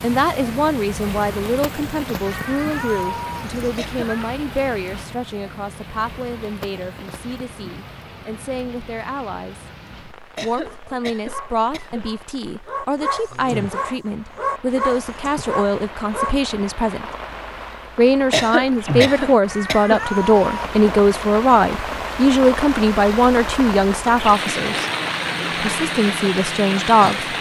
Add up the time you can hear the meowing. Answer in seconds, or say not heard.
3 s.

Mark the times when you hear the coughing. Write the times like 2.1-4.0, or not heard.
3.8-4.2, 10.3-12.1, 18.3-20.0.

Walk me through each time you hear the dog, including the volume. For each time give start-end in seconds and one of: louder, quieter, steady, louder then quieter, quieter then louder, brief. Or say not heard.
10.6-16.4 louder then quieter.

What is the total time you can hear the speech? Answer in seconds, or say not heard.
25 s.